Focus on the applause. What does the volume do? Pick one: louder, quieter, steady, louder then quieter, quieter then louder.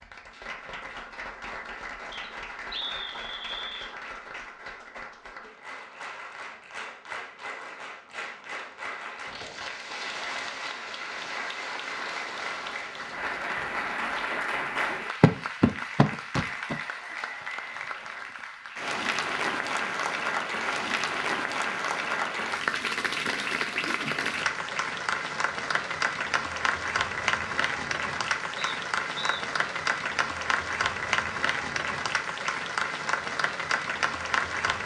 louder.